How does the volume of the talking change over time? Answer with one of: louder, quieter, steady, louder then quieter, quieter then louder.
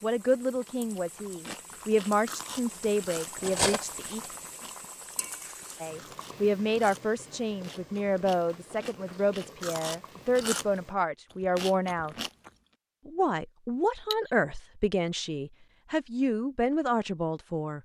steady.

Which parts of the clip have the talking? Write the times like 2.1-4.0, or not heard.
0.0-4.2, 5.8-12.2, 13.1-17.8.